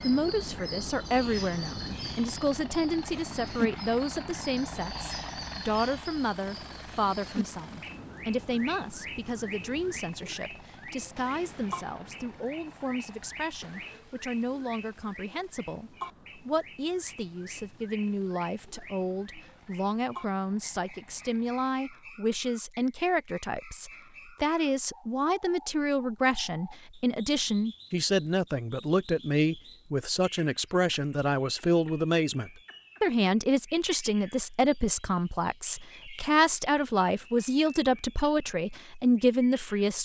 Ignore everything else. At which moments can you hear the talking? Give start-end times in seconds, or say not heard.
0.0-40.0.